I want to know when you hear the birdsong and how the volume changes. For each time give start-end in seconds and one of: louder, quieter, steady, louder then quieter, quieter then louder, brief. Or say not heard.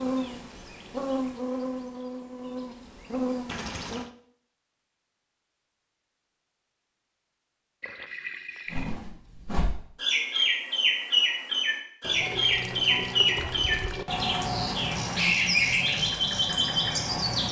8.7-17.4 steady.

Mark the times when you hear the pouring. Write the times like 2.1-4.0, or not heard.
3.5-4.1, 7.8-8.9, 12.0-14.1.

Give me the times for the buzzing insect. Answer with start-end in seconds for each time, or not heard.
0.0-4.0.